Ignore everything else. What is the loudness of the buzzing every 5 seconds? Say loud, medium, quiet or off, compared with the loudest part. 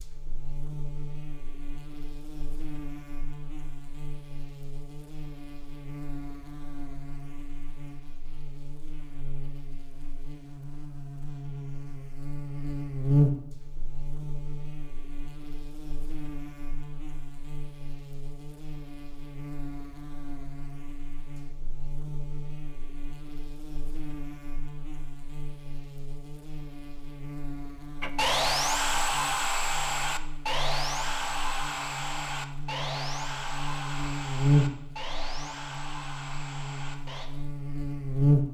quiet, quiet, loud, quiet, quiet, quiet, loud, loud.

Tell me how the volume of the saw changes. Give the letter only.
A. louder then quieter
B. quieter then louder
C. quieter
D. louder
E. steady
C.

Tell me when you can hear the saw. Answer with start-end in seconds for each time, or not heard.
28.0-37.3.